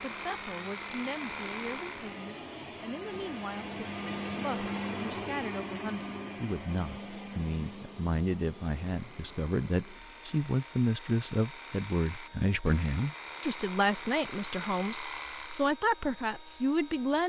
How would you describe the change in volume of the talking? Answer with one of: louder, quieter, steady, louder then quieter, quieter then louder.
louder.